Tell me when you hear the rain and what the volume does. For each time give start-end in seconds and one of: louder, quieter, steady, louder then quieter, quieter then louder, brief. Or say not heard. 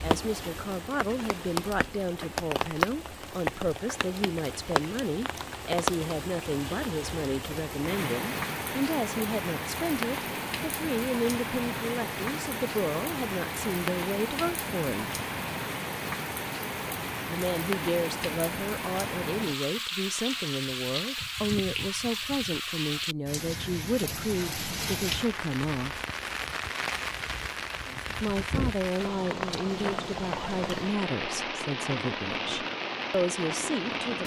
0.0-34.2 steady.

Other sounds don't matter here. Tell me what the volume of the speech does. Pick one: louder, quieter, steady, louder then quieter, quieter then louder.
steady.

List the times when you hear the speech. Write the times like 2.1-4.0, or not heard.
0.0-15.2, 17.2-26.1, 28.2-34.2.